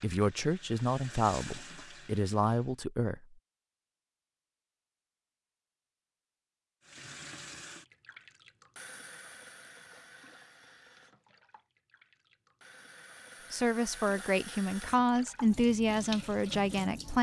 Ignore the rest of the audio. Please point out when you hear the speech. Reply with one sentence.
The speech can be heard from 0.0 to 3.2 s and from 13.5 to 17.1 s.